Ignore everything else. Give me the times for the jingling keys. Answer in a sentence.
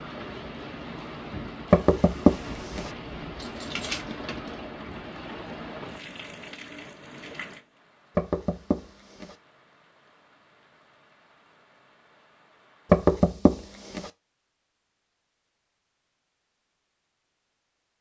The jingling keys can be heard from 3.4 to 4.5 s.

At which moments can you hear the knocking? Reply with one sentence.
You can hear the knocking from 1.7 to 2.9 s, from 8.2 to 9.3 s and from 12.9 to 14.1 s.